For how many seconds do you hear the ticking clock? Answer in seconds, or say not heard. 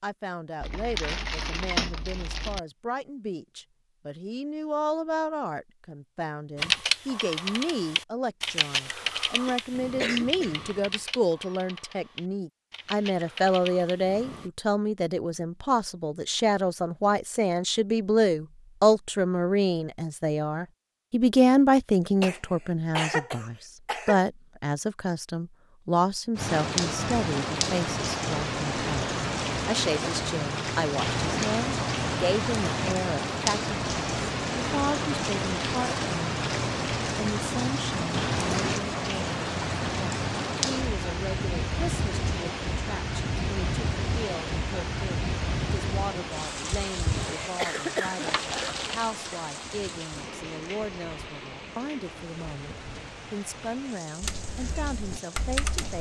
not heard.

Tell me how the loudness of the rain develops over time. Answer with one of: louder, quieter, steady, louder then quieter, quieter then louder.
quieter.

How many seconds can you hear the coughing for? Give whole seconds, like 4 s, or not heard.
6 s.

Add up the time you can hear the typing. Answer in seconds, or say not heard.
10 s.